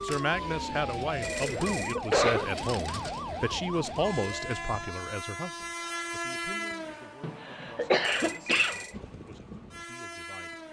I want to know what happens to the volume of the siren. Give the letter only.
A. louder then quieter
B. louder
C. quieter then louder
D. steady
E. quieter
D.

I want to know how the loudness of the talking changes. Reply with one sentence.
The loudness of the talking goes down.